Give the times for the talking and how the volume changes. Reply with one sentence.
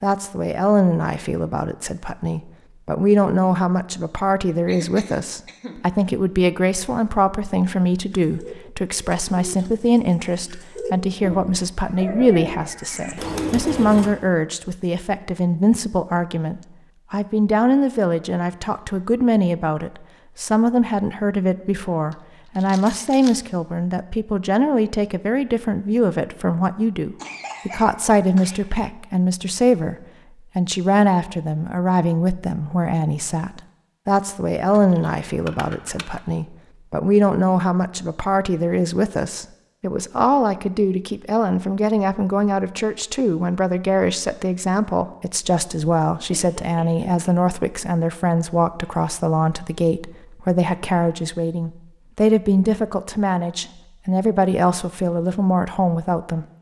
The talking can be heard from 0.0 to 29.9 s, at a steady volume; and from 30.6 to 56.5 s, at a steady volume.